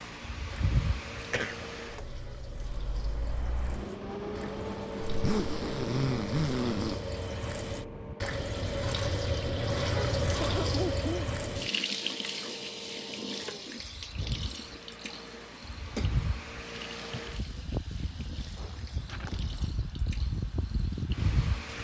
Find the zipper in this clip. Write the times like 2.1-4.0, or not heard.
5.0-7.0, 18.6-19.7.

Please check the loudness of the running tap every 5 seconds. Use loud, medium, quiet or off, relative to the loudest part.
quiet, loud, loud, quiet, quiet.